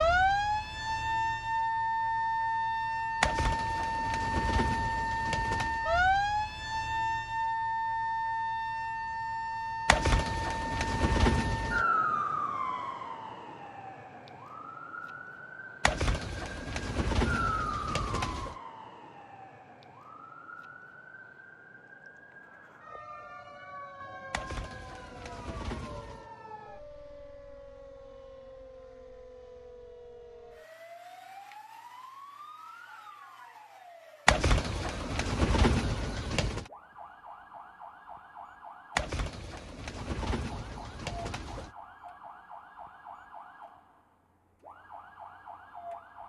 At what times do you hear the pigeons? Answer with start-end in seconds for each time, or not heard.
3.2-5.8, 9.8-11.8, 15.8-18.6, 24.3-26.2, 34.2-36.6, 39.0-41.7.